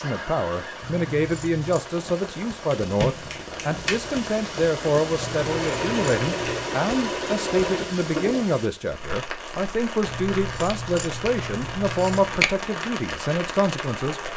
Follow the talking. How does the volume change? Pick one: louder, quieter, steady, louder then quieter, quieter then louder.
steady.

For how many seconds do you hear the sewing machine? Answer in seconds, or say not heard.
3 s.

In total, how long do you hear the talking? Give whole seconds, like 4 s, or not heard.
14 s.